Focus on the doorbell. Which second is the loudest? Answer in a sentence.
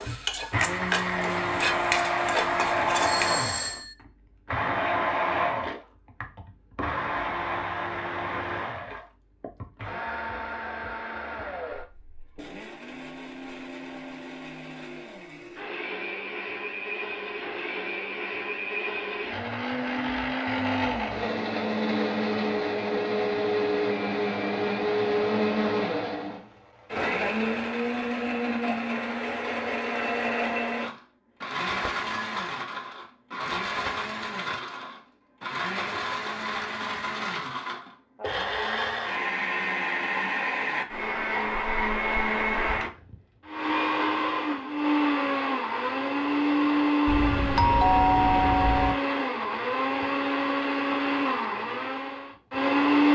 The loudest moment of the doorbell is at 48 seconds.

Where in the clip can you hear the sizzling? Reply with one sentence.
The sizzling can be heard from 0.0 to 3.5 s.